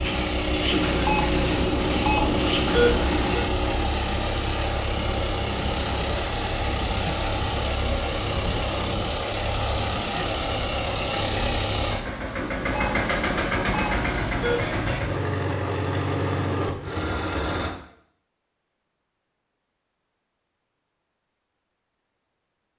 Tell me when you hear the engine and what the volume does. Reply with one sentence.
The engine can be heard from 0.0 to 17.8 s, at a steady volume.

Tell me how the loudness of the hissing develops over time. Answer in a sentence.
The volume of the hissing goes down.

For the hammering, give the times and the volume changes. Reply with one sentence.
You can't hear the hammering here.